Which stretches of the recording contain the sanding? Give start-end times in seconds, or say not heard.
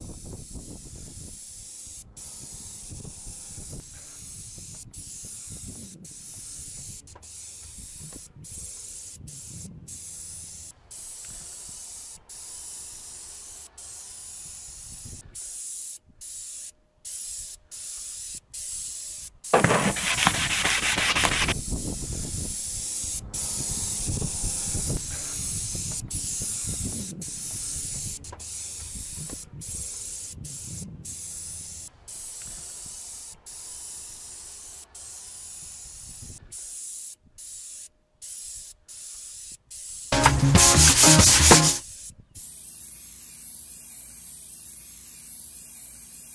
19.5-21.6, 40.1-41.8.